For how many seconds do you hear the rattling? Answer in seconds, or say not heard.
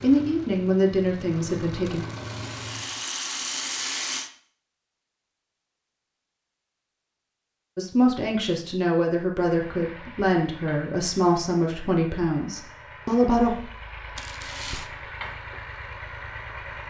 3 s.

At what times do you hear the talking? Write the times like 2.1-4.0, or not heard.
0.0-2.0, 7.8-13.6.